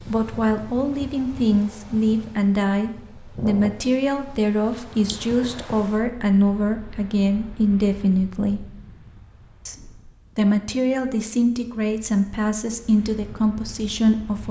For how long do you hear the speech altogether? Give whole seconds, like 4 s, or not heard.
13 s.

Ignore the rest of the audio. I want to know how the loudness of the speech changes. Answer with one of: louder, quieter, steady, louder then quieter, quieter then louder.
steady.